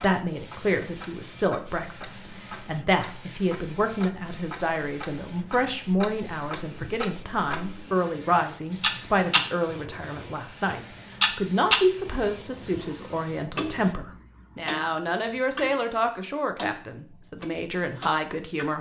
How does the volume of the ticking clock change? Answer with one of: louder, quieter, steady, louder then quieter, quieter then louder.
louder then quieter.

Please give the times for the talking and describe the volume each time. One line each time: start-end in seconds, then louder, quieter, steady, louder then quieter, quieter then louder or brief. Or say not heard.
0.0-18.7 steady.